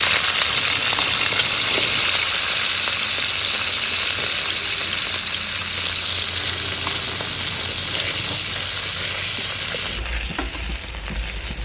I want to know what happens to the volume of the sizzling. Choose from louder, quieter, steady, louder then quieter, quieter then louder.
quieter.